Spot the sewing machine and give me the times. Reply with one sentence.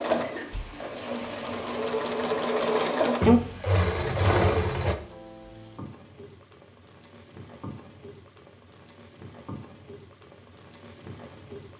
You can hear the sewing machine from 0.0 to 5.0 s.